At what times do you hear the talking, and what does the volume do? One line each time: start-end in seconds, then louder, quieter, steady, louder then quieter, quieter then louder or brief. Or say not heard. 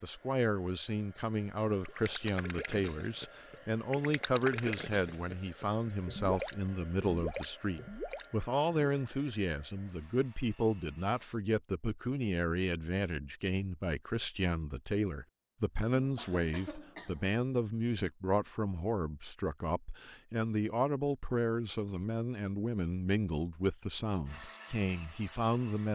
0.0-25.9 steady.